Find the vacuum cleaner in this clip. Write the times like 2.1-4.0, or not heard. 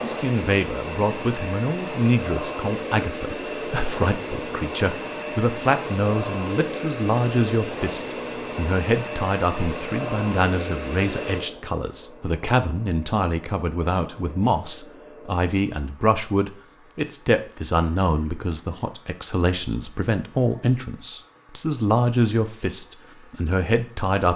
0.0-24.1.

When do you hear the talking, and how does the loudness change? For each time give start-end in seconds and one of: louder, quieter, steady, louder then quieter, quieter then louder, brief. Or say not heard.
0.0-24.3 steady.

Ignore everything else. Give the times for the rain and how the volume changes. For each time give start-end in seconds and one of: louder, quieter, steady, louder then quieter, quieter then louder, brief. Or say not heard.
not heard.